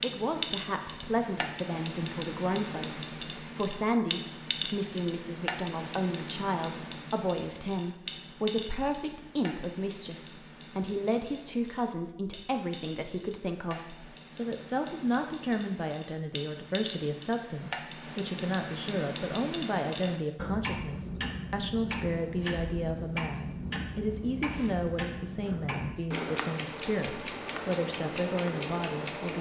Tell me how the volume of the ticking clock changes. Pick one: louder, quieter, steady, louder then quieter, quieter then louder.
quieter then louder.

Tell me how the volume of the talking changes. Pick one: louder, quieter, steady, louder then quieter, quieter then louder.
steady.